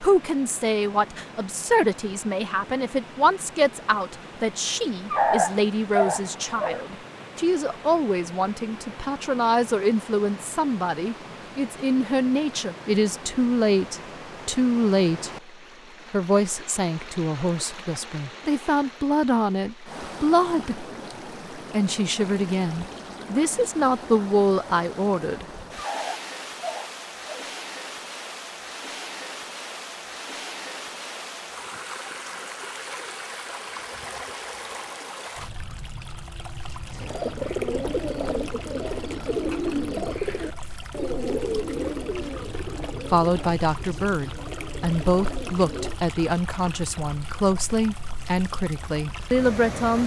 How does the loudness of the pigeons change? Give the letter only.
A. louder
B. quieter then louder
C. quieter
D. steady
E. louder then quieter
C.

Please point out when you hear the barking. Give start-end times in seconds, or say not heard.
5.1-6.8, 25.8-27.5.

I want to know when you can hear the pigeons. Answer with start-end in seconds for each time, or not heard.
36.9-46.0.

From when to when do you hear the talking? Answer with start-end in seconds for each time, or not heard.
0.0-15.3, 16.1-20.9, 21.6-25.4, 43.1-50.0.